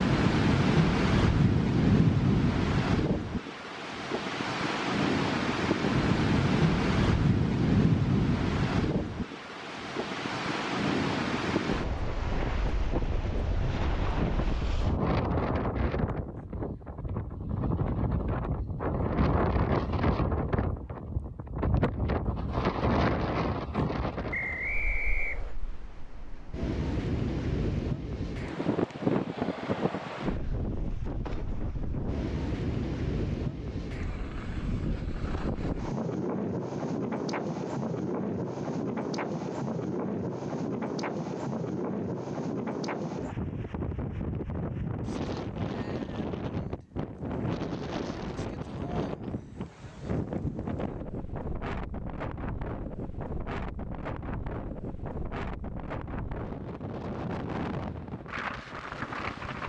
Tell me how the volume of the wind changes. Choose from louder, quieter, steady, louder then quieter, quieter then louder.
quieter.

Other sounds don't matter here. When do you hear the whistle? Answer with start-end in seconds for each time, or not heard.
24.3-25.6.